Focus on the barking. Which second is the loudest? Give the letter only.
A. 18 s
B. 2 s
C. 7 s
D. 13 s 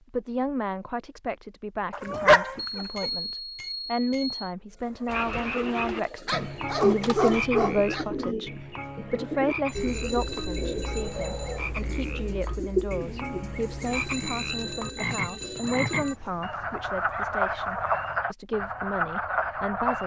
B.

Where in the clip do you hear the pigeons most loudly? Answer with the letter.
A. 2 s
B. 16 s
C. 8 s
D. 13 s
D.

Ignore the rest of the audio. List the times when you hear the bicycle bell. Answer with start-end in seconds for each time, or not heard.
2.8-4.5, 9.7-11.6, 13.8-16.1.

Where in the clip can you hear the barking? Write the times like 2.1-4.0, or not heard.
1.9-3.0, 6.2-8.1, 10.9-11.8, 15.6-18.1.